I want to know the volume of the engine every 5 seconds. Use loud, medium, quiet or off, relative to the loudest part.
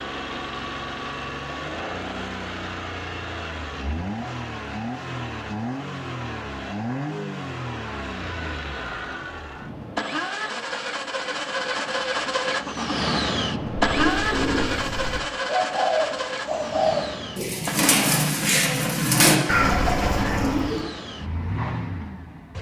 medium, medium, loud, medium, medium.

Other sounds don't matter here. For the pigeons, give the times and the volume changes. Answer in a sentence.
The pigeons can be heard from 13.7 to 20.9 s, getting louder.